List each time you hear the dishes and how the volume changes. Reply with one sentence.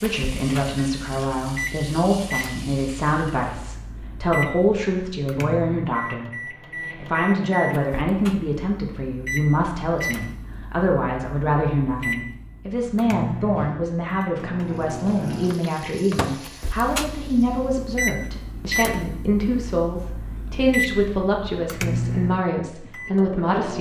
The dishes can't be heard in this clip.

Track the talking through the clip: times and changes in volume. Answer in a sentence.
You can hear the talking from 0.0 to 23.7 s, at a steady volume.